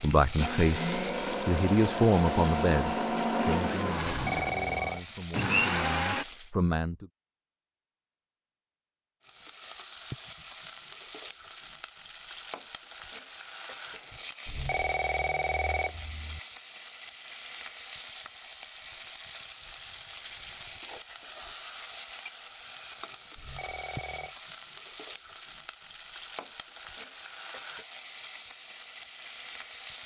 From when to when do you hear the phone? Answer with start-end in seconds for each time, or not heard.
4.0-5.0, 14.4-16.4, 23.4-24.4.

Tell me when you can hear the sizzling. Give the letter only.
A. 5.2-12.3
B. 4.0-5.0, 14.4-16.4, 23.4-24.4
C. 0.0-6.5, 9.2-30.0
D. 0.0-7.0
C.